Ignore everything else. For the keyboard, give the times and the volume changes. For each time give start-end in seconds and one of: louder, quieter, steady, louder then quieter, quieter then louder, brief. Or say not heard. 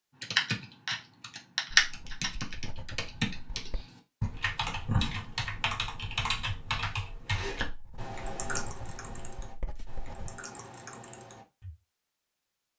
0.2-11.7 quieter.